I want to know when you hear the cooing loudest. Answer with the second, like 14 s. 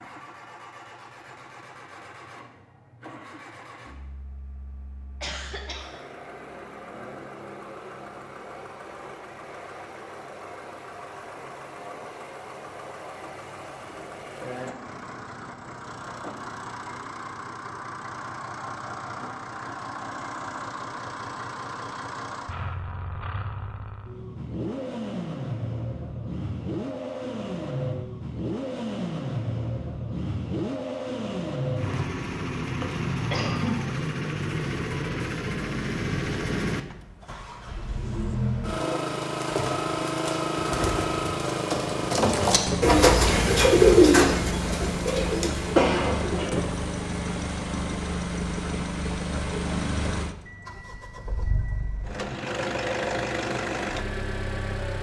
44 s.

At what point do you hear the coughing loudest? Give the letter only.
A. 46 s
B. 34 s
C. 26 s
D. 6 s
A.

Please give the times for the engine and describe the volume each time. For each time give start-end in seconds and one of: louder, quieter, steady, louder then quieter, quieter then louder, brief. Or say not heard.
0.0-54.9 louder.